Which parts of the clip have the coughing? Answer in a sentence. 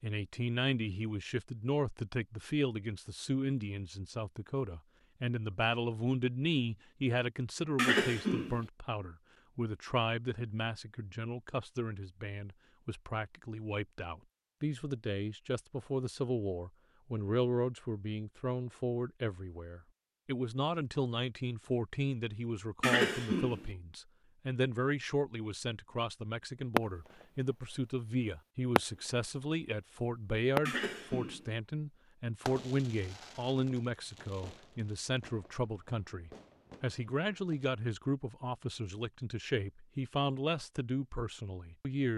You can hear the coughing from 7.8 to 8.6 s, from 22.8 to 23.6 s and from 30.6 to 31.5 s.